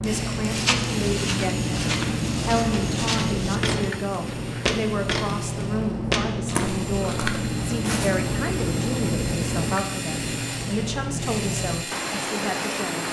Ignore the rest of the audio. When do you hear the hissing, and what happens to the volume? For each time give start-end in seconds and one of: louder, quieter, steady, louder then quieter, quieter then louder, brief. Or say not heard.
0.0-13.0 steady.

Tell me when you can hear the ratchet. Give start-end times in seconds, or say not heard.
not heard.